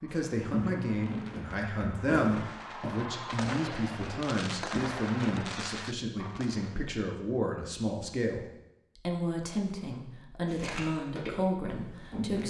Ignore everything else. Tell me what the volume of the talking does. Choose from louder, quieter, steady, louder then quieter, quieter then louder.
steady.